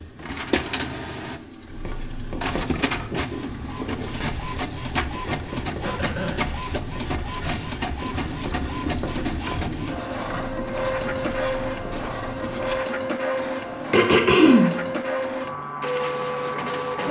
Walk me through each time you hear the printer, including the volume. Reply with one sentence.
You can hear the printer from 0.0 to 17.0 s, at a steady volume.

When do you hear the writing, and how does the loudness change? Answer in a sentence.
You can hear the writing from 1.6 to 12.8 s, at a steady volume.